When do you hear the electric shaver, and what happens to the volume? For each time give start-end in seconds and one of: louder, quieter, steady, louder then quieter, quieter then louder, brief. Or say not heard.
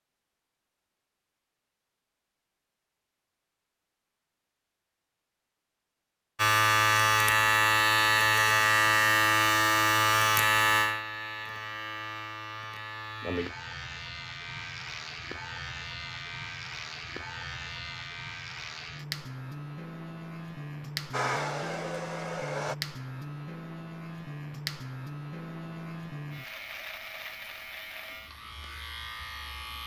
6.3-29.8 quieter.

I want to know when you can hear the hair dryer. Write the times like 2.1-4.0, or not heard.
21.1-22.8.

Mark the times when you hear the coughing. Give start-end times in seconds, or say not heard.
not heard.